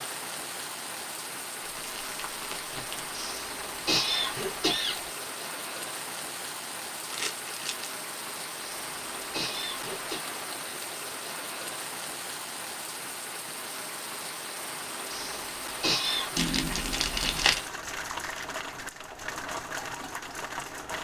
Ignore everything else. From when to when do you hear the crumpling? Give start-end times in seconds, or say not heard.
1.6-3.1, 7.0-7.9, 16.4-17.6.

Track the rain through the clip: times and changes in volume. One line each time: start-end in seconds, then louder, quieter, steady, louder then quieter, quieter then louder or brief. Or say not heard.
0.0-20.9 steady.